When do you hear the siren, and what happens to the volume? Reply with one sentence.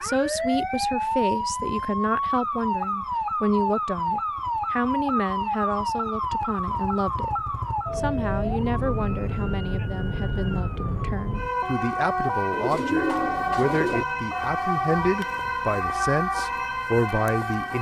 The siren can be heard from 0.0 to 17.7 s, at a steady volume.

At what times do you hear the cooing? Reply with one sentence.
You can hear the cooing from 12.5 to 14.1 s.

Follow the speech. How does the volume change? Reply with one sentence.
The volume of the speech stays about the same.